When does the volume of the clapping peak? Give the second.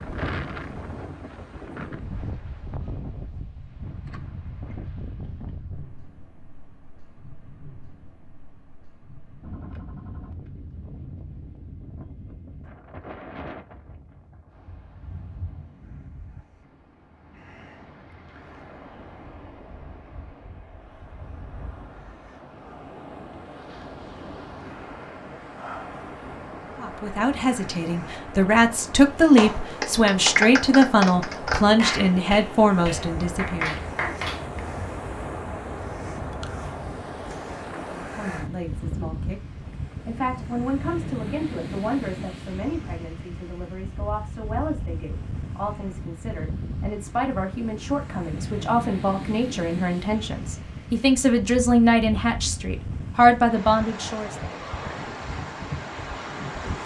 30 s.